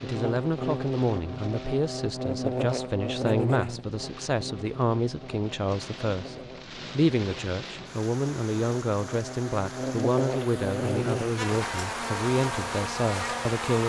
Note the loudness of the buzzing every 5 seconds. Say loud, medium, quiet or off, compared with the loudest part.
loud, medium, loud.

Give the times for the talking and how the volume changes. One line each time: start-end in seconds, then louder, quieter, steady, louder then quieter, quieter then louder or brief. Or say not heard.
0.0-13.8 steady.